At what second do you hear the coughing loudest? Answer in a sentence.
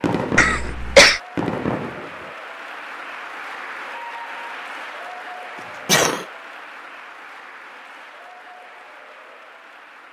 The volume of the coughing peaks at 1 second.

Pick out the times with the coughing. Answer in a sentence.
The coughing can be heard from 0.3 to 1.2 s and from 5.8 to 6.2 s.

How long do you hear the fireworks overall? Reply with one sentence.
The fireworks can be heard for 2 seconds in total.